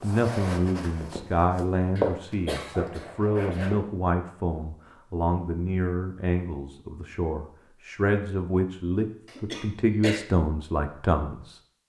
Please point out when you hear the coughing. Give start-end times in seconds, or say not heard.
1.9-3.6, 9.2-10.2.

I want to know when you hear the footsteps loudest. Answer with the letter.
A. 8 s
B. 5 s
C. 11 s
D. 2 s
D.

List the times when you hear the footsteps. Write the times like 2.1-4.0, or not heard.
0.0-3.8.